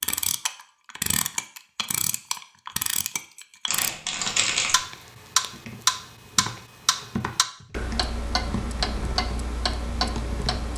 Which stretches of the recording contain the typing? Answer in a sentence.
You can hear the typing from 5.5 to 10.7 s.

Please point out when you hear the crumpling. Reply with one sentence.
You can hear the crumpling from 3.6 to 4.8 s.